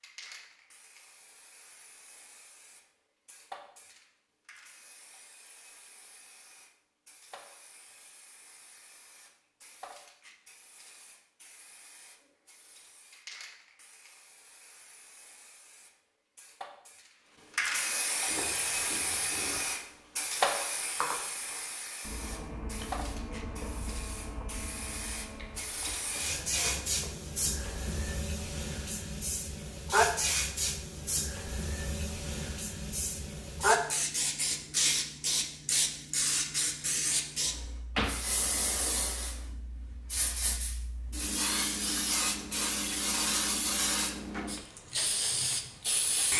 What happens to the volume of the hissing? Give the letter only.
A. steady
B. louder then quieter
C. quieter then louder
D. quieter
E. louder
E.